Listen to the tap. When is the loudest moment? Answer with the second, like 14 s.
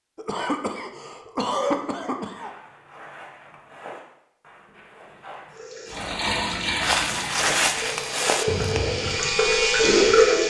10 s.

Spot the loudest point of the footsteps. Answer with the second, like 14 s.
8 s.